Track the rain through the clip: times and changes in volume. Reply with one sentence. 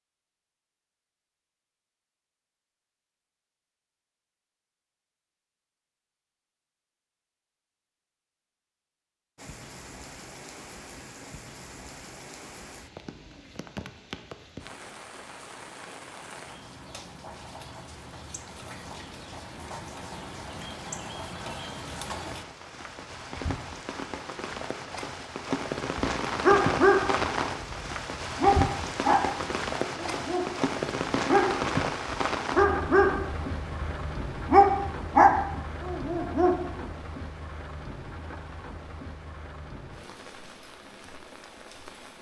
The rain can be heard from 9.3 to 42.1 s, getting louder then quieter.